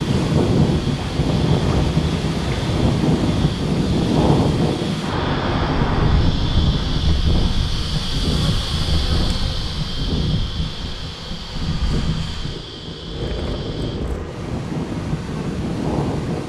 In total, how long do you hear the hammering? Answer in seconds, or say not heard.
not heard.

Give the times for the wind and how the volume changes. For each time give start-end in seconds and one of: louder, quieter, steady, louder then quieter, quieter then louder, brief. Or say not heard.
0.0-16.4 quieter.